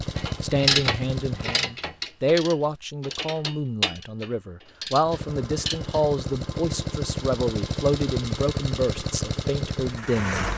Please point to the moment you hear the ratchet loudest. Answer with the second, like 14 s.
1 s.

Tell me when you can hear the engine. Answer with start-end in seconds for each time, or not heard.
0.0-1.6, 5.0-10.5.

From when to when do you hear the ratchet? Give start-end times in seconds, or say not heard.
0.1-6.0.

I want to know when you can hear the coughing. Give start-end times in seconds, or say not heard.
not heard.